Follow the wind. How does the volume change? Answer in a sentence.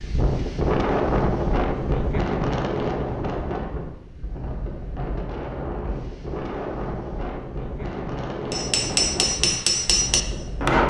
The loudness of the wind goes down.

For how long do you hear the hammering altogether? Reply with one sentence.
The hammering can be heard for 2 seconds in total.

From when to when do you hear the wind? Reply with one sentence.
The wind can be heard from 0.0 to 10.8 s.